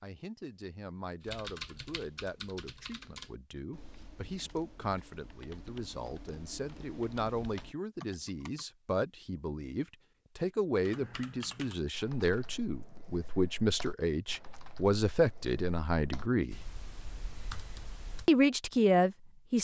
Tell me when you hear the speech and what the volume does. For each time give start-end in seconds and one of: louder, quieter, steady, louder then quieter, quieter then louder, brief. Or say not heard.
0.0-16.6 louder
18.2-19.6 brief.